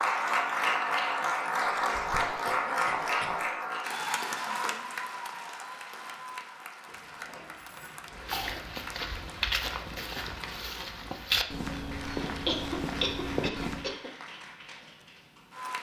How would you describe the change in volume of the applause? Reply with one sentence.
The loudness of the applause goes down.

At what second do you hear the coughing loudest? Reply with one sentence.
The volume of the coughing peaks at 13 seconds.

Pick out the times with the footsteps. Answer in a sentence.
The footsteps can be heard from 8.1 to 13.9 s.